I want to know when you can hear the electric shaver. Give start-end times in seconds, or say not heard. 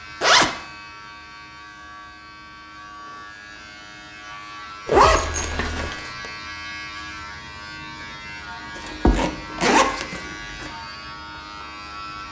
0.0-12.2.